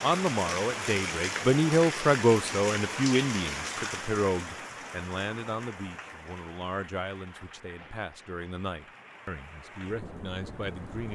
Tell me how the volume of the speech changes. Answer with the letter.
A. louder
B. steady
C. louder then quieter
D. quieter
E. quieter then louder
D.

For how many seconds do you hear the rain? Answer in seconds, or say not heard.
11 s.